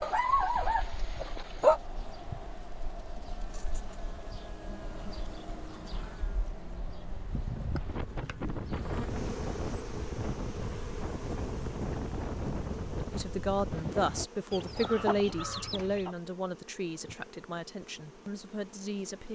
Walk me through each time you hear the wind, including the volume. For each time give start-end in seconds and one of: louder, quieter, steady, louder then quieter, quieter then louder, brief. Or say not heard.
0.0-14.2 louder.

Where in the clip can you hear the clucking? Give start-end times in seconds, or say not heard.
14.5-16.1.